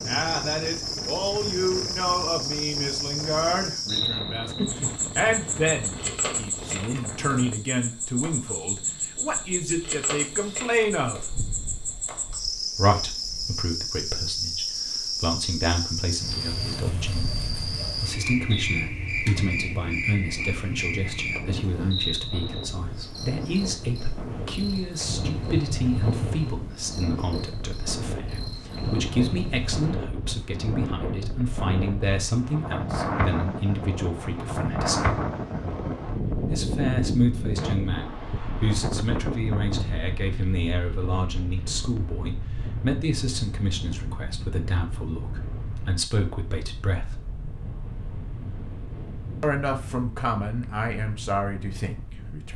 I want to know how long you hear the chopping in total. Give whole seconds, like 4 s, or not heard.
not heard.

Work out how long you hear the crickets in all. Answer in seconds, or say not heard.
30 s.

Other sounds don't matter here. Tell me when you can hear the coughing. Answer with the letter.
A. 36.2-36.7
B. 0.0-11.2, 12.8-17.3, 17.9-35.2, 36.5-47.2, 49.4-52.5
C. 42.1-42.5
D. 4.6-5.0
D.